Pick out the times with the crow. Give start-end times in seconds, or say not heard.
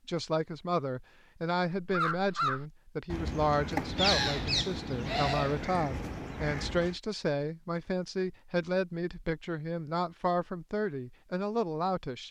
1.8-7.0.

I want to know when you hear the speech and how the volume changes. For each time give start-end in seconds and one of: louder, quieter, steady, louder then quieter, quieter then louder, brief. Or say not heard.
0.1-12.2 steady.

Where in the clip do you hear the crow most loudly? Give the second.
4 s.